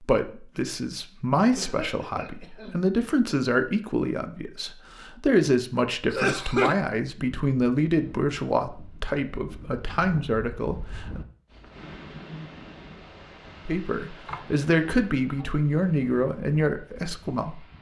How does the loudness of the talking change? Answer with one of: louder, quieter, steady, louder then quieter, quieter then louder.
steady.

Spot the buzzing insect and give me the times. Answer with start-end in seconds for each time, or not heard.
not heard.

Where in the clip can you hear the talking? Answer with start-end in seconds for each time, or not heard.
0.0-11.2, 13.7-17.6.